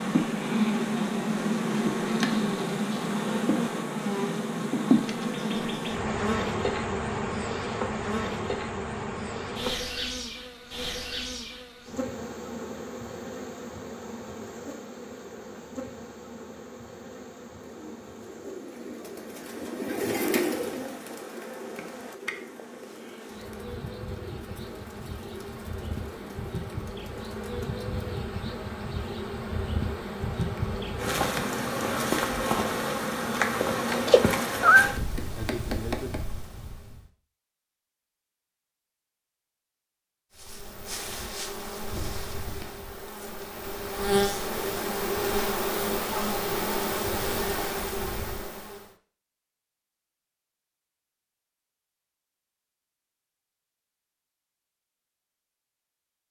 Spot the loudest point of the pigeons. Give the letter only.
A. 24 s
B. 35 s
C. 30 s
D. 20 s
D.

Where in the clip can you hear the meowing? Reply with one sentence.
The meowing can be heard from 33.6 to 34.9 s.